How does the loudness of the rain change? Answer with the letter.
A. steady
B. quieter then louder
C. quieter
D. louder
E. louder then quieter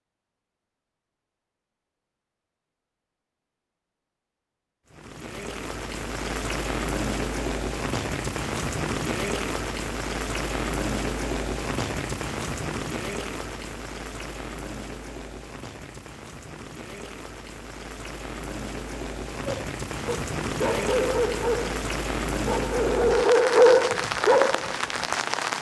B.